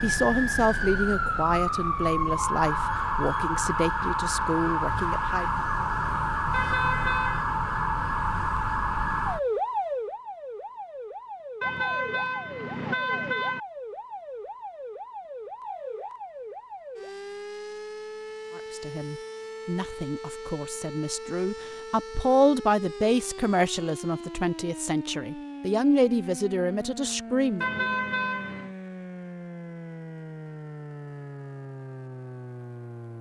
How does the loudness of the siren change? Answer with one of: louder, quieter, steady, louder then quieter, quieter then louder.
quieter.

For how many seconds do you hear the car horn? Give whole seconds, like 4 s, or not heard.
4 s.